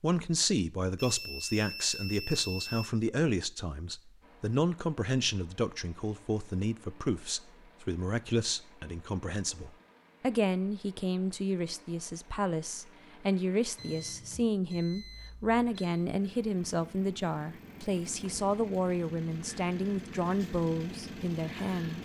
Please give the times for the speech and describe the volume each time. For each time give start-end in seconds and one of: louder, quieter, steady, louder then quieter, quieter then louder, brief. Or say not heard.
0.0-22.0 steady.